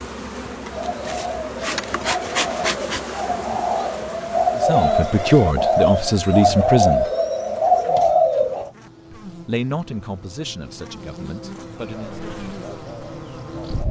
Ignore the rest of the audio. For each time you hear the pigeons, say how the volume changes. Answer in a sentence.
The pigeons can be heard from 0.7 to 8.7 s, getting louder; and briefly from 11.9 to 13.8 s.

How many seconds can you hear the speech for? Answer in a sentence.
You can hear the speech for 6 seconds altogether.